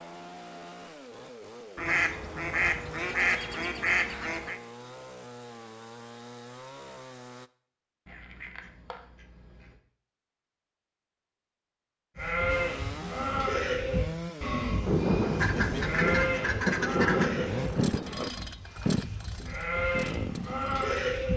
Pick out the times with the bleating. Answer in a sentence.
You can hear the bleating from 12.2 to 21.3 s.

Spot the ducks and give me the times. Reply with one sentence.
You can hear the ducks from 1.8 to 4.6 s, from 8.1 to 9.8 s and from 15.3 to 17.4 s.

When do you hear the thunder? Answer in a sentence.
The thunder can be heard from 14.8 to 18.3 s.